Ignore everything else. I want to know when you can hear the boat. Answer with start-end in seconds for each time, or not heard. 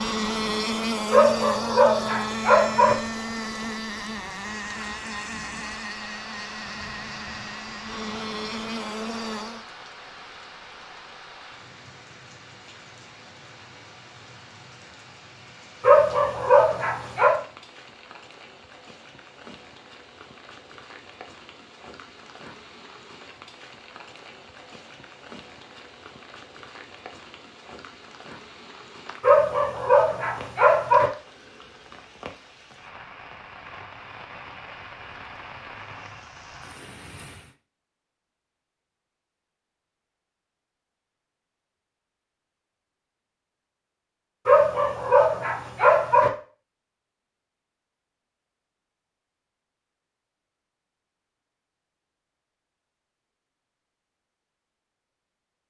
0.0-9.7.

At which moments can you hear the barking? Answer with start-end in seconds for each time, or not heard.
1.1-3.0, 15.8-17.4, 29.2-31.1, 44.5-46.3.